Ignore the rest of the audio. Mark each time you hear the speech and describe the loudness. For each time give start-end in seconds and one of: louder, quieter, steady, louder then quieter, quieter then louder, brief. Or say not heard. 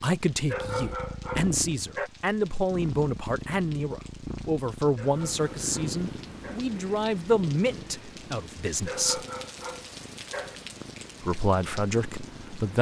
0.0-9.2 steady
11.2-12.7 brief.